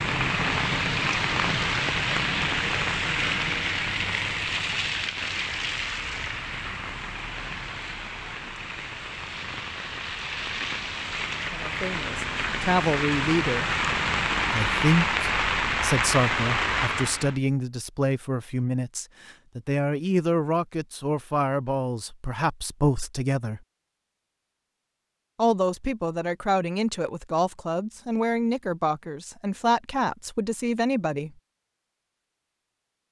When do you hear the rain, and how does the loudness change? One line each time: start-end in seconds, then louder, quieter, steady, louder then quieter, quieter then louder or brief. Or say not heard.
0.0-17.4 quieter then louder.